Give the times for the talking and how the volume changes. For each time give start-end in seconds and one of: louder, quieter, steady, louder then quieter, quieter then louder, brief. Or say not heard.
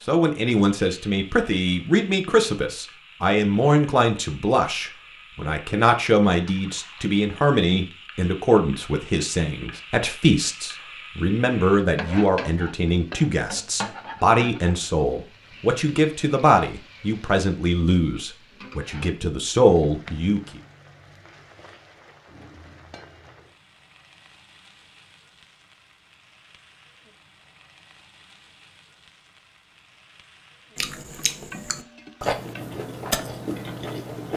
0.1-20.6 steady.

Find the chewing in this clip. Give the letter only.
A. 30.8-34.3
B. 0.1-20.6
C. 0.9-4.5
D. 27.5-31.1
A.